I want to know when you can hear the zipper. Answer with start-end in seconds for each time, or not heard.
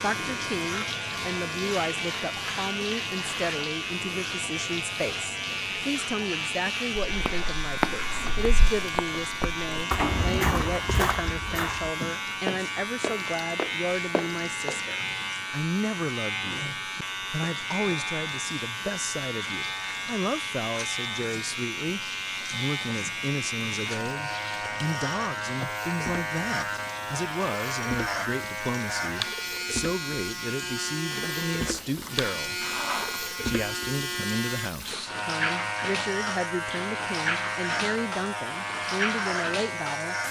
31.2-33.4.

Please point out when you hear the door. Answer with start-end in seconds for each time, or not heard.
9.9-10.8.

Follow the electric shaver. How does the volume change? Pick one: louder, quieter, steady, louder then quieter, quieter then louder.
steady.